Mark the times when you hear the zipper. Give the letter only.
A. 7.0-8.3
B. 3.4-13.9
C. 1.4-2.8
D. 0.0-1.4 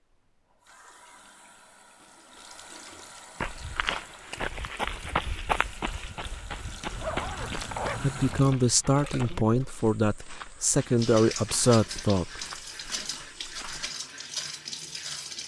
A.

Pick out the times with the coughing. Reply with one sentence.
You can't hear the coughing here.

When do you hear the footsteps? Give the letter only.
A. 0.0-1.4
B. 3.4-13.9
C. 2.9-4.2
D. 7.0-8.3
B.